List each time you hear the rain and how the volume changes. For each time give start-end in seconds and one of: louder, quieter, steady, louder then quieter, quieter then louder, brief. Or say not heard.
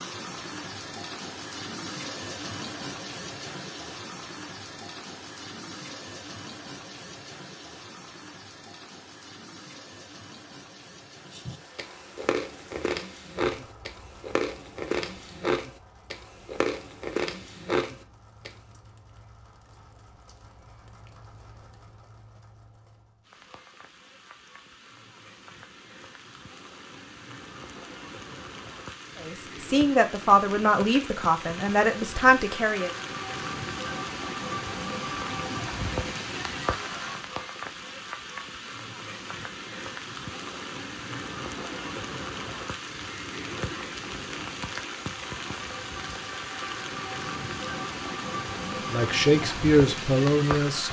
0.0-50.8 quieter then louder.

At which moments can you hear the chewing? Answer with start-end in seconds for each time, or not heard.
11.3-18.5.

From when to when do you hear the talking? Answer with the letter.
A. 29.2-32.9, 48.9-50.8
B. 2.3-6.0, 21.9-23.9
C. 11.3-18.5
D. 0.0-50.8
A.